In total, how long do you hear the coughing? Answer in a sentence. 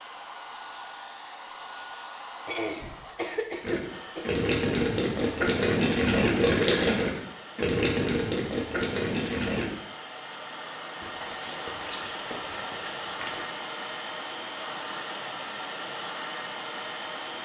The coughing can be heard for 2 seconds in total.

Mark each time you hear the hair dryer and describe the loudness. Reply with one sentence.
You can hear the hair dryer from 0.0 to 17.4 s, getting louder.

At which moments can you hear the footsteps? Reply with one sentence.
The footsteps can be heard from 10.4 to 13.6 s.